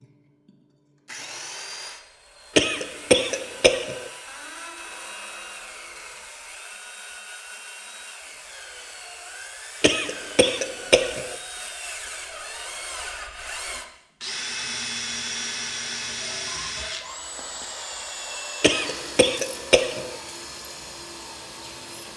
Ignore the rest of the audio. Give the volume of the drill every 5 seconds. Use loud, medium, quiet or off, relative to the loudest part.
medium, medium, loud, loud, medium.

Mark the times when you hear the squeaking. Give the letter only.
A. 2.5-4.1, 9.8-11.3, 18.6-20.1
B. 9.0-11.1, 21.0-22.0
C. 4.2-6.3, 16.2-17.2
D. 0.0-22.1
C.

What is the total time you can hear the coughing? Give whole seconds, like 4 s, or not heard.
5 s.